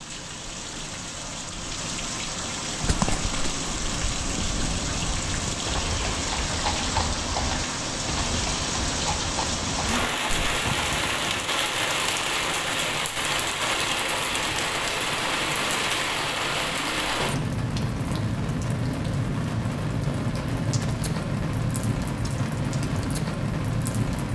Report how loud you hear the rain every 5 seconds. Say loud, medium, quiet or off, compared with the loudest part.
medium, loud, loud, loud, loud.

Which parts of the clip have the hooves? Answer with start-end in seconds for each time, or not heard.
2.7-11.6.